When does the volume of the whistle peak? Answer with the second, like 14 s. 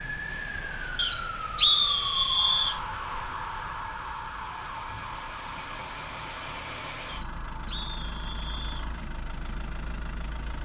2 s.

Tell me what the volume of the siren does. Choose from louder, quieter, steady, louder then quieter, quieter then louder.
quieter.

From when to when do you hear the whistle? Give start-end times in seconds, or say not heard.
0.9-2.8, 7.0-8.8.